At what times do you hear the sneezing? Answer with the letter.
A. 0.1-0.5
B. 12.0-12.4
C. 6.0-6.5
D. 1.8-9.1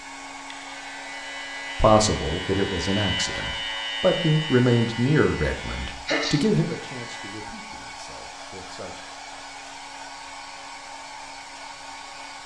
C.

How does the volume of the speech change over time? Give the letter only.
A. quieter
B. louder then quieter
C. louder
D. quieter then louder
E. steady
B.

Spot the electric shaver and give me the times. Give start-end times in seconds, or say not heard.
0.1-7.5.